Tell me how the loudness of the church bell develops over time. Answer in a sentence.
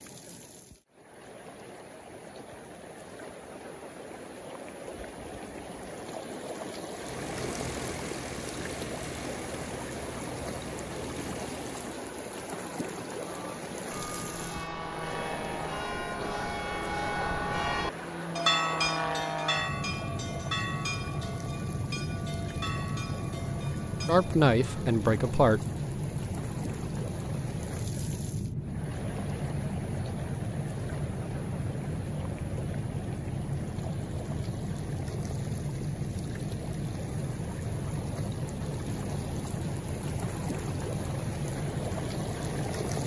The volume of the church bell goes up, then down.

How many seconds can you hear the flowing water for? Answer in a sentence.
You can hear the flowing water for 43 seconds altogether.